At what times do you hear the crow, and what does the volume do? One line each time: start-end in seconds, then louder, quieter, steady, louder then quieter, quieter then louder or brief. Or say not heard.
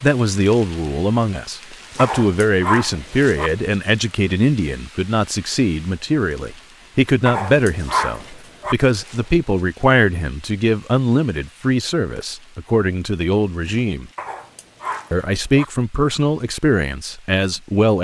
not heard.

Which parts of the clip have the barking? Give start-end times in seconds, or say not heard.
1.9-3.5, 7.2-8.8, 14.2-15.7.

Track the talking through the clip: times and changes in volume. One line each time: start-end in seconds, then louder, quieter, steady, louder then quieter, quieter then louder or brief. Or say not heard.
0.0-14.1 steady
15.1-17.9 brief.